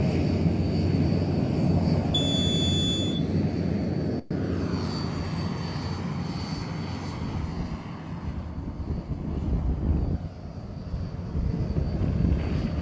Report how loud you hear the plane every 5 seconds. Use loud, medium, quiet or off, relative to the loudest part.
loud, medium, medium.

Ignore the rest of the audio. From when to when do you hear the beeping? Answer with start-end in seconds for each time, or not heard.
2.1-3.1.